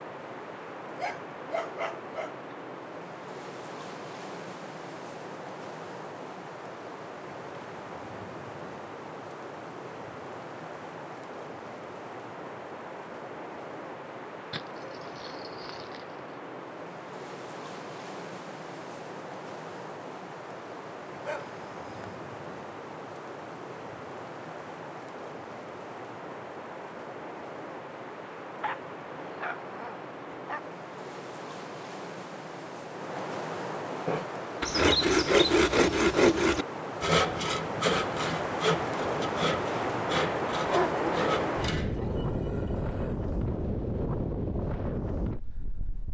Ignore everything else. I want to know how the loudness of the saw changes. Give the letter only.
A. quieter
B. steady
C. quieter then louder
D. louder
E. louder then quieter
A.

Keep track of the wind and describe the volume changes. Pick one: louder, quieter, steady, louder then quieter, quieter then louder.
louder.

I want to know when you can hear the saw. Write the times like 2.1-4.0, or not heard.
34.0-42.1.